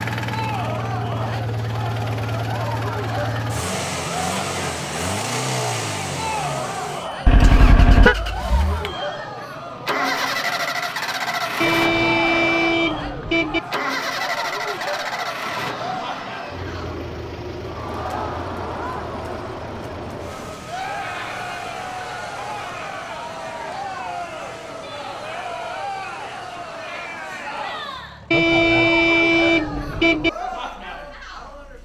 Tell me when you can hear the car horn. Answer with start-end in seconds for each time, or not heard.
7.2-8.2, 11.6-13.6, 28.3-30.3.